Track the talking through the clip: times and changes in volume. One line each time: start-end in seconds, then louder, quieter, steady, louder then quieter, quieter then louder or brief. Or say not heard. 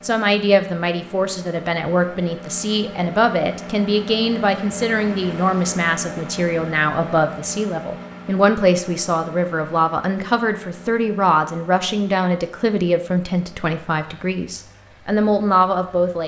0.0-16.2 steady.